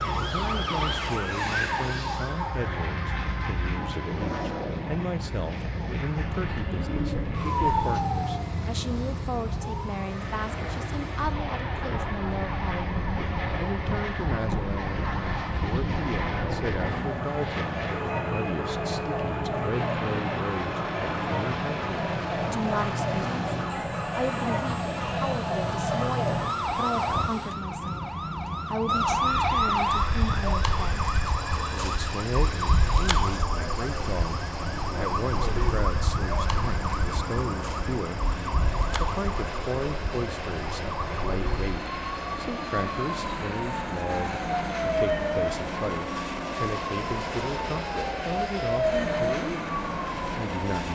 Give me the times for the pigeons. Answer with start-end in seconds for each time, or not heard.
6.2-8.0.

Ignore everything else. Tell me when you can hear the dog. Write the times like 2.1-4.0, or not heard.
not heard.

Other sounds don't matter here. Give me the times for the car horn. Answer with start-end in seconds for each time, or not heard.
not heard.